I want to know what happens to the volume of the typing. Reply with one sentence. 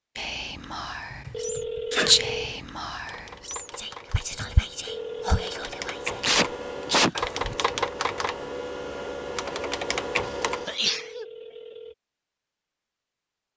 The volume of the typing goes up.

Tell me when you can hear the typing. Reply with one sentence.
You can hear the typing from 1.0 to 10.8 s.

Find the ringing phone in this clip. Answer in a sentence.
You can hear the ringing phone from 1.3 to 2.6 s, from 4.8 to 5.5 s and from 10.8 to 11.9 s.